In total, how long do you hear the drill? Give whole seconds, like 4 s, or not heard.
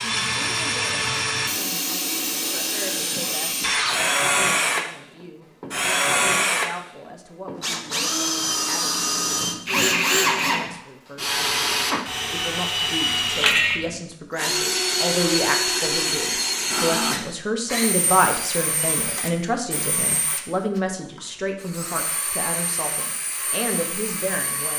25 s.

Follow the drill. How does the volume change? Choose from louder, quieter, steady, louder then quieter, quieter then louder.
quieter.